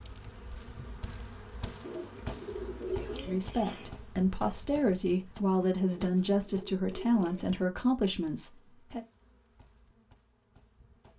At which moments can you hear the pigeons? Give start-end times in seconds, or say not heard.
1.8-4.0, 5.9-7.5.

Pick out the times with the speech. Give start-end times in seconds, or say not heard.
3.2-9.1.